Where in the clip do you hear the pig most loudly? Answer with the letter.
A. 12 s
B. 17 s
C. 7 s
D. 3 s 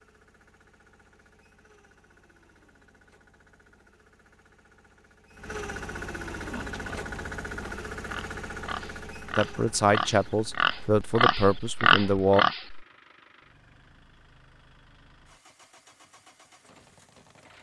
A.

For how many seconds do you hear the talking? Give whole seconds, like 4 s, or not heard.
3 s.